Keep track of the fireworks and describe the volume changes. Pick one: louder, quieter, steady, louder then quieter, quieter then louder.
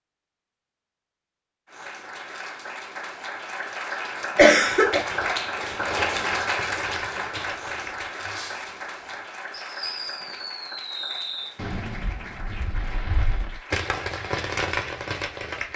louder.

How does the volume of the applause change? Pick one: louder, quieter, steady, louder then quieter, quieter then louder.
louder then quieter.